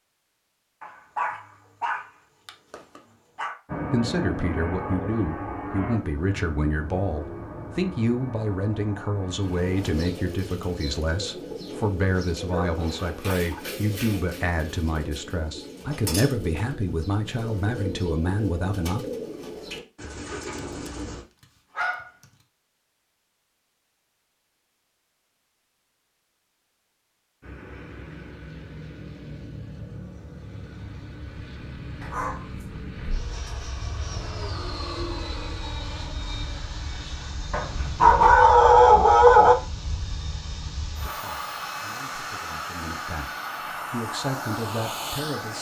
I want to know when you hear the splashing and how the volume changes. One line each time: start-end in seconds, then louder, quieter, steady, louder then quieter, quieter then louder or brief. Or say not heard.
not heard.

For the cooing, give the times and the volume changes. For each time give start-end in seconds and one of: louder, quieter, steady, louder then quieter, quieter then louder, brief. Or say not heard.
9.4-21.2 steady.